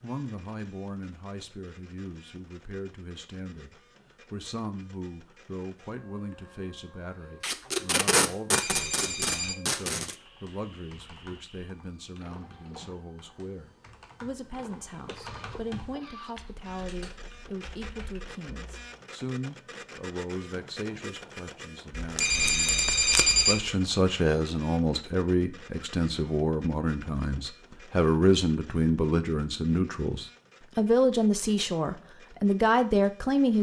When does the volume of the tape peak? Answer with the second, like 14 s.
8 s.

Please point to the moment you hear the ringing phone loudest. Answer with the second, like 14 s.
23 s.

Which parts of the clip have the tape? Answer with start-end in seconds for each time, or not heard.
7.4-10.2, 21.9-23.4.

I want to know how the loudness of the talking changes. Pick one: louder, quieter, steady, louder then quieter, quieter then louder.
louder.